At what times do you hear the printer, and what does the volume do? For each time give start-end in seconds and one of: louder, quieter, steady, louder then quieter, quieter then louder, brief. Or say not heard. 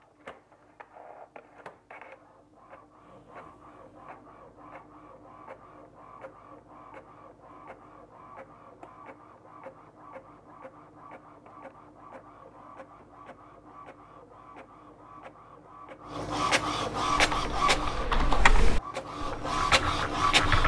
0.0-20.6 louder.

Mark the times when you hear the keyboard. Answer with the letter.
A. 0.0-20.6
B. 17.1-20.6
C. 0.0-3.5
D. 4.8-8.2
B.